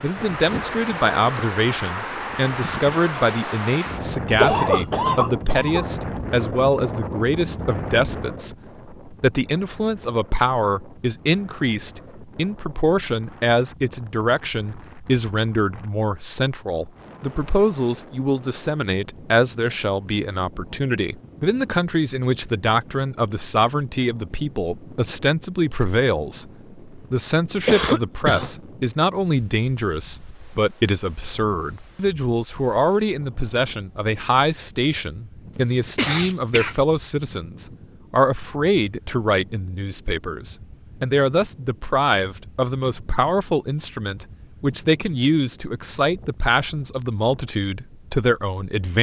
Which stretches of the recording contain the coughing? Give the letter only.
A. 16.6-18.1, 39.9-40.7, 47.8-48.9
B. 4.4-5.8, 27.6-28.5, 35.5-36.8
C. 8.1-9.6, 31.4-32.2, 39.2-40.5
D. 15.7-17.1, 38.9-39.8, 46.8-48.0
B.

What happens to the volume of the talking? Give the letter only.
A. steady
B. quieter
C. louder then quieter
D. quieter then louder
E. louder
A.